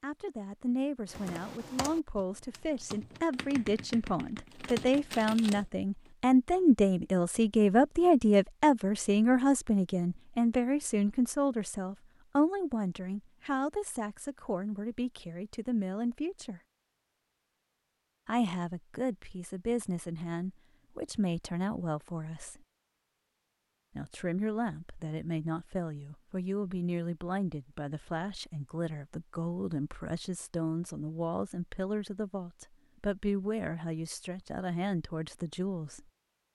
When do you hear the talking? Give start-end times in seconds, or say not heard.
0.0-16.6, 18.2-22.6, 23.9-36.0.